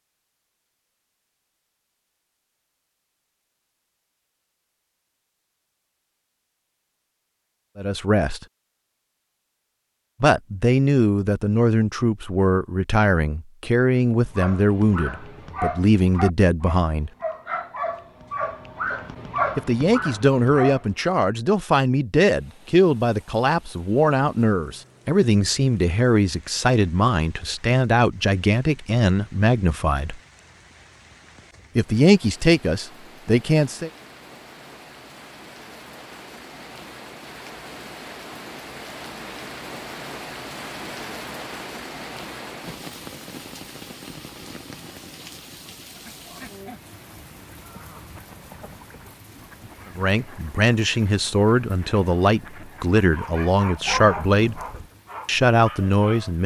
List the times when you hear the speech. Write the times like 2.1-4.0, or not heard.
7.8-8.4, 10.2-17.1, 19.6-30.2, 31.8-33.9, 50.0-54.6, 55.2-56.4.